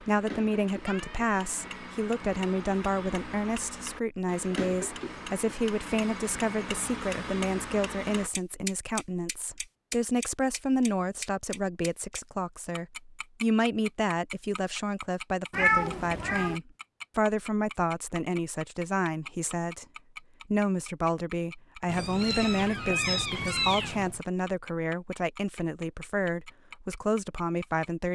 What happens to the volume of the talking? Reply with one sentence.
The volume of the talking stays about the same.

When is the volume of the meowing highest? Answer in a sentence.
The volume of the meowing peaks at 16 seconds.